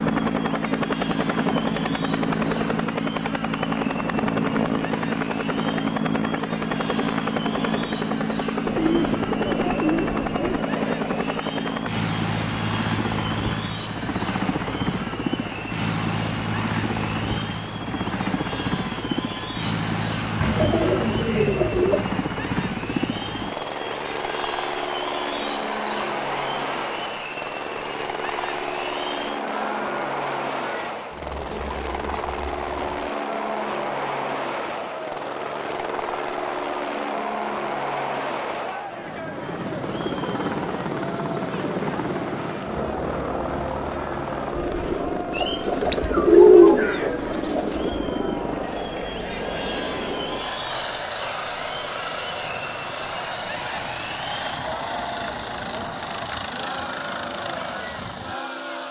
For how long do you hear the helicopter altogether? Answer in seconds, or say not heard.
59 s.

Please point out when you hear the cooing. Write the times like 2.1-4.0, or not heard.
8.7-10.7, 20.4-22.2, 45.4-48.0.